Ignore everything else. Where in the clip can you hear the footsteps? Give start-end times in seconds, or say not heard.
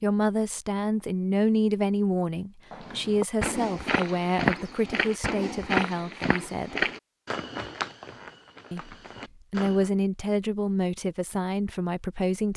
2.7-9.9.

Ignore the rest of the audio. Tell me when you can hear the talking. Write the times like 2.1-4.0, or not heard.
0.0-6.8, 8.7-12.5.